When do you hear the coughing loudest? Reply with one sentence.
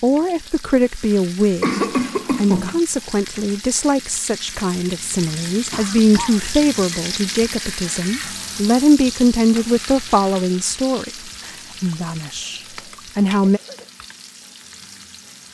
The volume of the coughing peaks at 2 seconds.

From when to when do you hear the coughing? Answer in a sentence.
The coughing can be heard from 1.6 to 2.8 s, from 5.7 to 6.5 s and from 11.9 to 13.9 s.